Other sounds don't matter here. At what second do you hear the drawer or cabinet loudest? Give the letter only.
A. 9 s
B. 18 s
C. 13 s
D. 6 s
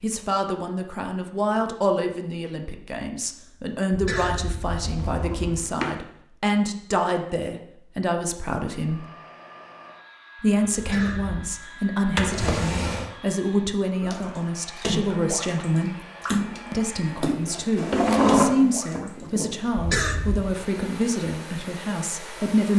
B.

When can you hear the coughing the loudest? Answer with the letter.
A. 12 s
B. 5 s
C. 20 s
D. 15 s
C.